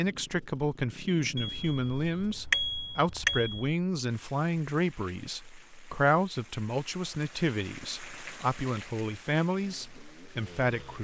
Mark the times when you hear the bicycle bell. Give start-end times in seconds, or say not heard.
1.4-3.8.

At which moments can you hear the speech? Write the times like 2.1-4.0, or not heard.
0.0-10.9.